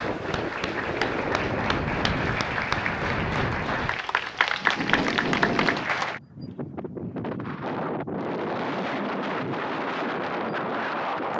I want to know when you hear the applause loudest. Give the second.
5 s.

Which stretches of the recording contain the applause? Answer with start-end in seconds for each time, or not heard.
0.0-6.2.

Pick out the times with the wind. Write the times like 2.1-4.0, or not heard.
0.0-11.3.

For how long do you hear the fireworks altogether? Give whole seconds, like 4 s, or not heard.
not heard.